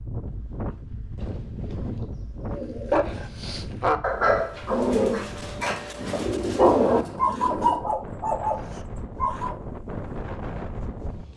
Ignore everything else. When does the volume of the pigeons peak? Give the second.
7 s.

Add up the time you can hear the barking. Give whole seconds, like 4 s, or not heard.
7 s.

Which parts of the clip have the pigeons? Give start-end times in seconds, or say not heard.
1.6-3.0, 6.0-7.8.